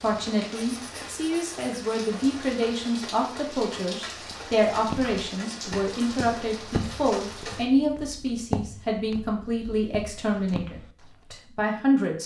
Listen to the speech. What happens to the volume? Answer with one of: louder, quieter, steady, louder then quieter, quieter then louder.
steady.